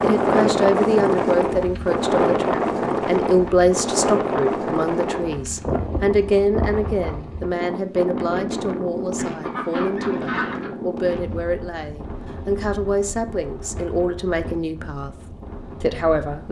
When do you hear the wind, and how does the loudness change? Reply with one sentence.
The wind can be heard from 0.0 to 16.4 s, getting quieter.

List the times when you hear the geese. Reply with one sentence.
You can hear the geese from 9.1 to 10.7 s.